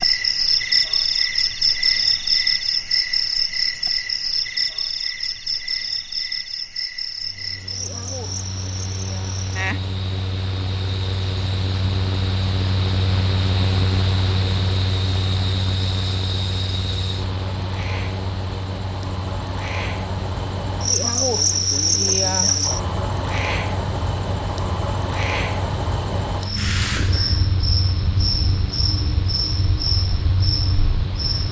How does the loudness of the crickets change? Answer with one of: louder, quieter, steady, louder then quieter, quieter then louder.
quieter then louder.